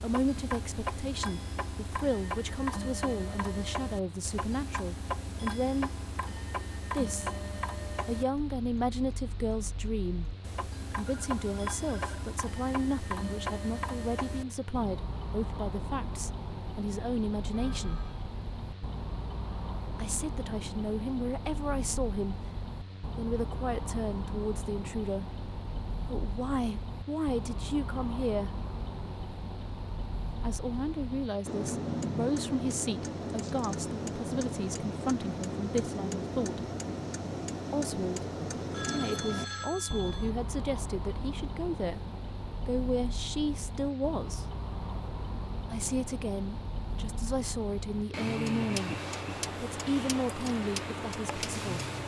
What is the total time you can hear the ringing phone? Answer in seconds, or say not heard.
4 s.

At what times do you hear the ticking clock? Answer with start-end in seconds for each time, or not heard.
0.0-52.0.